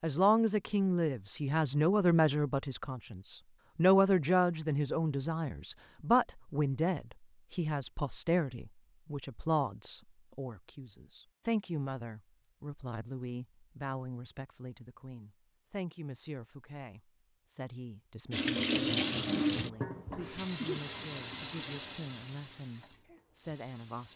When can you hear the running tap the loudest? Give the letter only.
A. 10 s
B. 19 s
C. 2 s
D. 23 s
B.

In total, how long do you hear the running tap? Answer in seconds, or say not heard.
6 s.